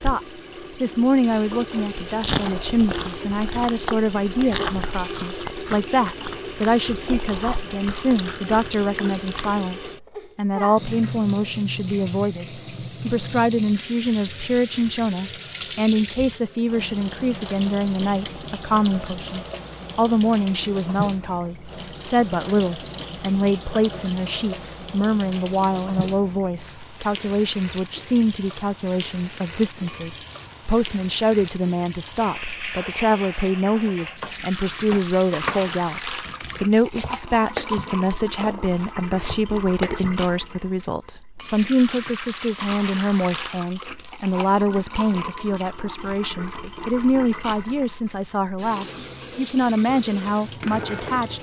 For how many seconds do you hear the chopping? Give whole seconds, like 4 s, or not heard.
6 s.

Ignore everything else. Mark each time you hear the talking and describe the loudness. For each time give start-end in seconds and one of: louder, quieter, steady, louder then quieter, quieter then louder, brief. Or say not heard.
0.0-51.3 steady.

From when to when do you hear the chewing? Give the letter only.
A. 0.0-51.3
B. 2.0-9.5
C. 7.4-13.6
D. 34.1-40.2
B.